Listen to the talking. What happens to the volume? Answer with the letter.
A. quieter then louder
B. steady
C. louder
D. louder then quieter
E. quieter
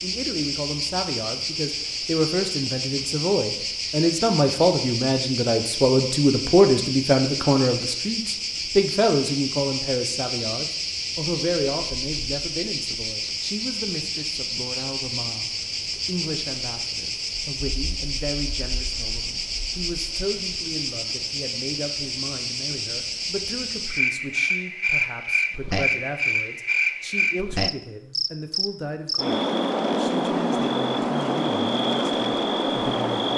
E.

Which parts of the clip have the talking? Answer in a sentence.
You can hear the talking from 0.0 to 33.3 s.